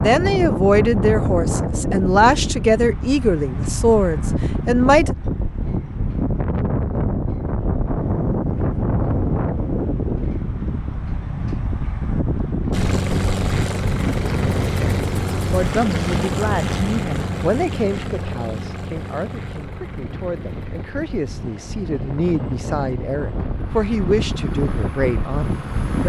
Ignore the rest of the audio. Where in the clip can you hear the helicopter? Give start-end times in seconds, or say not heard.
12.7-26.0.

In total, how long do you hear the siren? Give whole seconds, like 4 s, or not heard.
not heard.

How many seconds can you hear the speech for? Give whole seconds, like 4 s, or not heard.
16 s.